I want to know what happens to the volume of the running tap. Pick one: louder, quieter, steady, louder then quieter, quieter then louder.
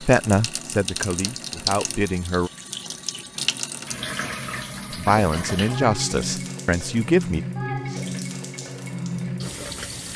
steady.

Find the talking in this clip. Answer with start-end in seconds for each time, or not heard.
0.0-2.5, 4.9-7.4.